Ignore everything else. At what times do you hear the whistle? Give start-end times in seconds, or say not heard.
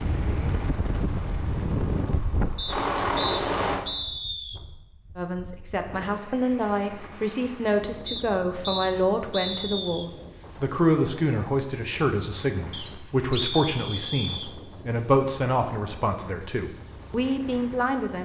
2.5-4.6, 8.1-10.1, 12.7-14.6.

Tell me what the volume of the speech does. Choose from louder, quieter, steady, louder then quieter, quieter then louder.
steady.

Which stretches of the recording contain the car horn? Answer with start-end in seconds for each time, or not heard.
not heard.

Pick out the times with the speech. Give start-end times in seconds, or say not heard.
5.2-18.2.